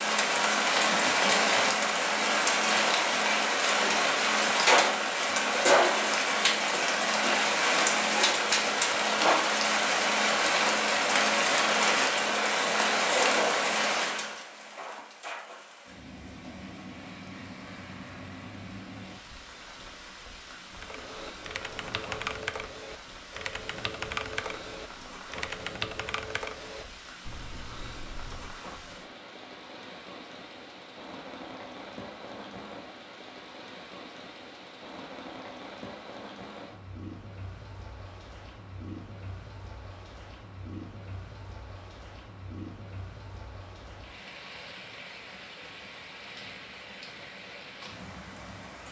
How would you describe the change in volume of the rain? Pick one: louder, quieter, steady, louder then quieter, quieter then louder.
quieter.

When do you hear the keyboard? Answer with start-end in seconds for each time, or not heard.
20.8-28.6.